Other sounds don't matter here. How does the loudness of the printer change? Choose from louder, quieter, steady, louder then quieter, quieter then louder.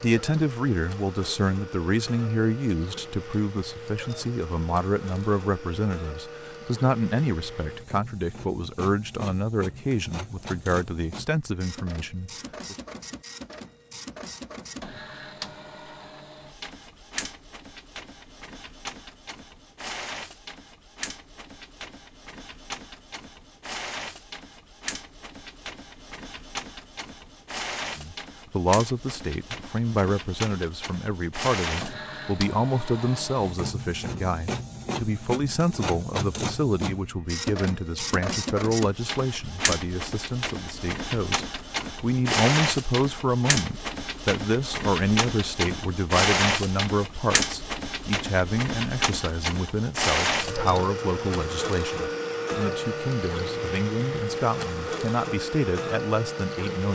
louder.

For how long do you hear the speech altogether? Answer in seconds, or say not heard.
42 s.